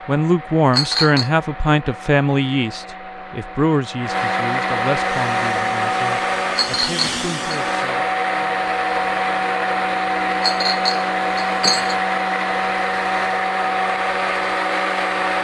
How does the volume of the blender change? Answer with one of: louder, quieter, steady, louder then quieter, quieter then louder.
louder.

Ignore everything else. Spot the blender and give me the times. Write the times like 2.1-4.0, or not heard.
0.0-15.3.